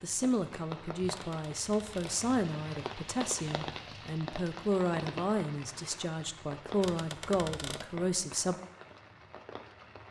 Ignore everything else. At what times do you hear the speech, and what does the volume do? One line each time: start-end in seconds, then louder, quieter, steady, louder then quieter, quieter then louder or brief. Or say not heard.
0.0-8.6 steady.